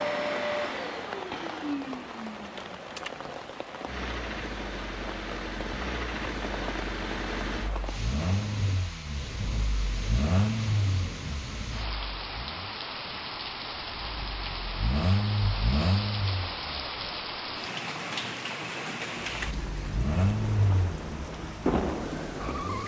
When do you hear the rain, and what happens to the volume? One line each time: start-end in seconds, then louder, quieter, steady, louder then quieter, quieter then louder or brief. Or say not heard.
0.0-22.8 louder.